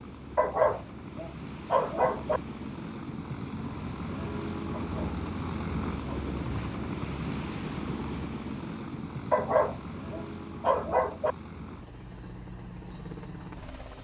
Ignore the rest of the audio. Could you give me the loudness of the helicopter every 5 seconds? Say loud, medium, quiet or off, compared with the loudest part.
loud, loud, medium.